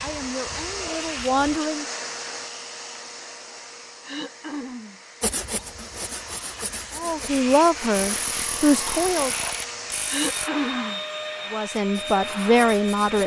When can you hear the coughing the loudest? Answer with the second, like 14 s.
11 s.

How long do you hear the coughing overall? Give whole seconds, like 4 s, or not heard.
2 s.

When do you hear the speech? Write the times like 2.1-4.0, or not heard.
0.0-1.9, 7.0-9.3, 11.5-13.2.